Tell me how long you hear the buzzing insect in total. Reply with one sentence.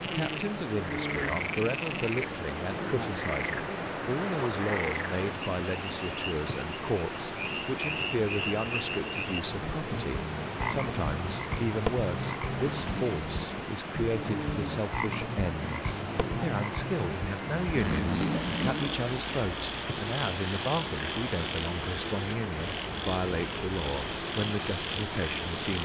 The buzzing insect can't be heard in this clip.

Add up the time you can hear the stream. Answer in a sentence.
You can hear the stream for 26 seconds altogether.